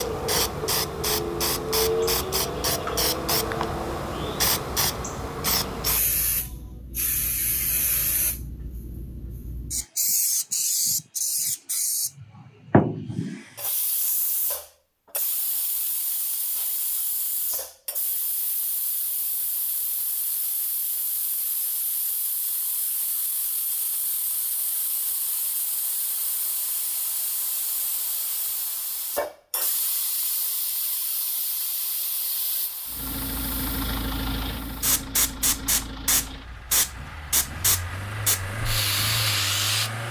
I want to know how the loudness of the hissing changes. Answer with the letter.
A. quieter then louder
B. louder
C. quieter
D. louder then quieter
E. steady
A.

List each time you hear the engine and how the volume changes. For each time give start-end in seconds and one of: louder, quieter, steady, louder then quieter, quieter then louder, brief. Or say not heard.
32.9-40.0 quieter then louder.